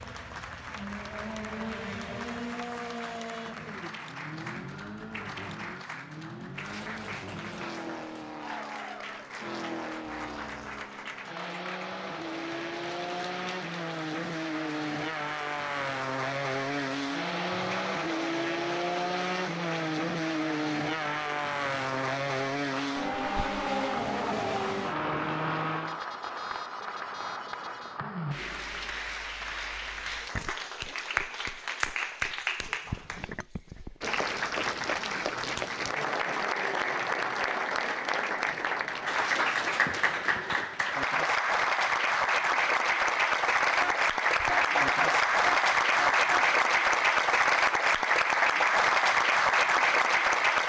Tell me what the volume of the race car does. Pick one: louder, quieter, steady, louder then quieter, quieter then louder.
louder.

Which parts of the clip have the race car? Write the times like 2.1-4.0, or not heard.
0.0-26.0.